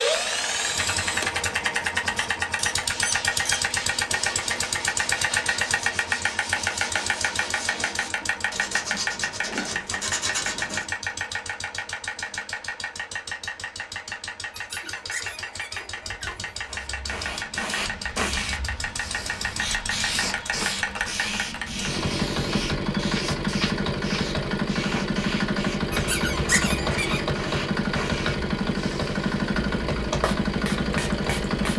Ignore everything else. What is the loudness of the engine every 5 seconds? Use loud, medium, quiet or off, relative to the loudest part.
loud, loud, medium, medium, loud, loud, loud.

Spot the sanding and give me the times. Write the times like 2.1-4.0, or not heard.
2.8-10.8.